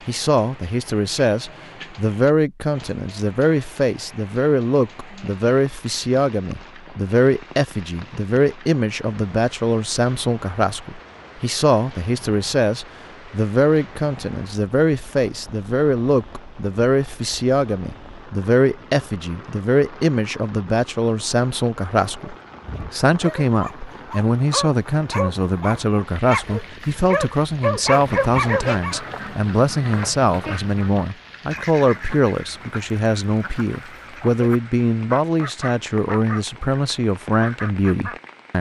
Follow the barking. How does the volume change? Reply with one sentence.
The loudness of the barking goes up.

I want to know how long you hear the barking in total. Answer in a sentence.
The barking can be heard for 7 seconds in total.